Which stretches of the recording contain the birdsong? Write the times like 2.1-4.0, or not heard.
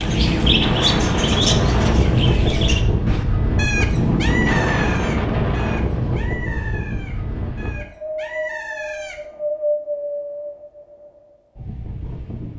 0.0-9.2.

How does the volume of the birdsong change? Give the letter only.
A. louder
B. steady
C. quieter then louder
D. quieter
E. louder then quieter
D.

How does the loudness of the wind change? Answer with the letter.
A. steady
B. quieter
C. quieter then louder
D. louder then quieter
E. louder
B.